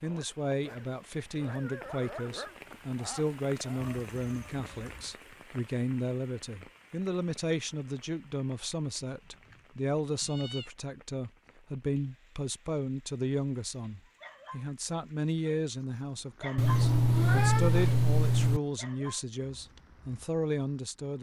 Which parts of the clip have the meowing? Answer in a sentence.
You can hear the meowing from 3.8 to 5.2 s, from 9.2 to 10.7 s and from 16.6 to 18.6 s.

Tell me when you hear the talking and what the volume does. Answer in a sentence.
The talking can be heard from 0.0 to 21.1 s, at a steady volume.